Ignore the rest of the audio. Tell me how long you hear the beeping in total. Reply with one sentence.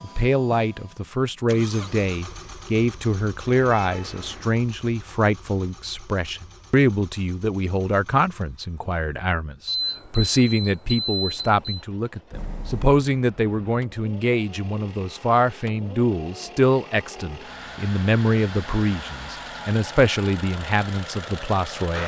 You can hear the beeping for 2 seconds altogether.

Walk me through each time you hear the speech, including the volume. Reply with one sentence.
You can hear the speech from 0.0 to 22.0 s, at a steady volume.